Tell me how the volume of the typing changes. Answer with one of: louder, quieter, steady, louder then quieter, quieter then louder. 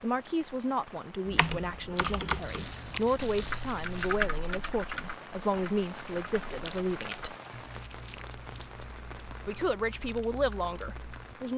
quieter.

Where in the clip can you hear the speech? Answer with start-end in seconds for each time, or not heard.
0.0-7.3, 9.4-11.5.